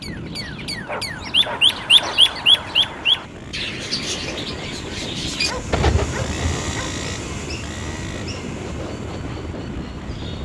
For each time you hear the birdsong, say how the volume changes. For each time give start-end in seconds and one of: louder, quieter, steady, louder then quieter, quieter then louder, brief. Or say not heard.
0.0-10.4 quieter.